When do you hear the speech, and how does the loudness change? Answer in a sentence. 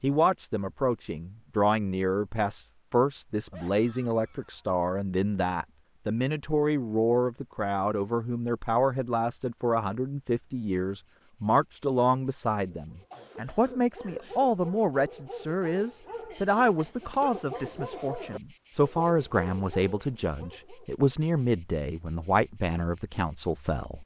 The speech can be heard from 0.0 to 24.0 s, at a steady volume.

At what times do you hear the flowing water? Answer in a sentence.
The flowing water can't be heard in this clip.